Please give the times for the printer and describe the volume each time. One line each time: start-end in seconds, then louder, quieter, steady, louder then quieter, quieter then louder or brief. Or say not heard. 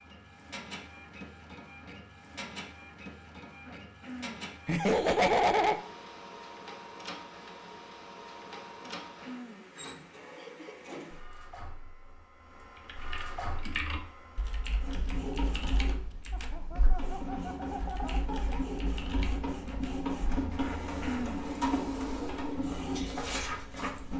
0.0-24.1 louder.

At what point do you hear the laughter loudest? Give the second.
5 s.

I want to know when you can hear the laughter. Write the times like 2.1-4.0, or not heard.
4.7-5.8, 10.3-10.9, 16.3-18.6.